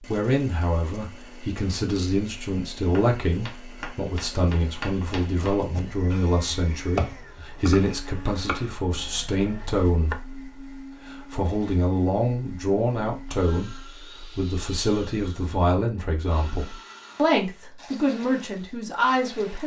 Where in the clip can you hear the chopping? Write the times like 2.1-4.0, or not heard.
2.9-10.2.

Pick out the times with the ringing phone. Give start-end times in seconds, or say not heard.
not heard.